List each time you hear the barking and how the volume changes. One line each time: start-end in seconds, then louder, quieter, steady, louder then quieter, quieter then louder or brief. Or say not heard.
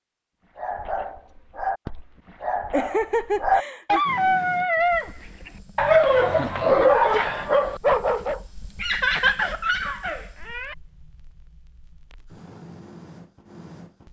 0.6-8.4 louder.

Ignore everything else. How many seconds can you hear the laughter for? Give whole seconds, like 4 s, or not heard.
3 s.